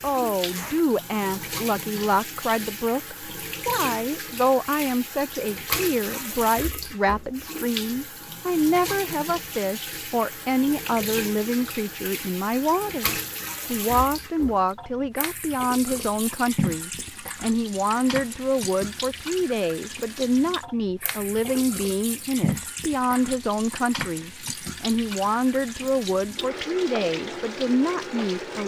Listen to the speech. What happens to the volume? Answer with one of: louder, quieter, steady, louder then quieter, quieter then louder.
steady.